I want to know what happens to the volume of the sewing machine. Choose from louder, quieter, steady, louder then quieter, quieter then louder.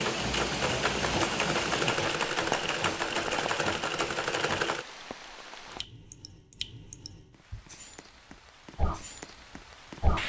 steady.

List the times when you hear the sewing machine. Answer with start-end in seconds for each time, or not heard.
0.0-4.8.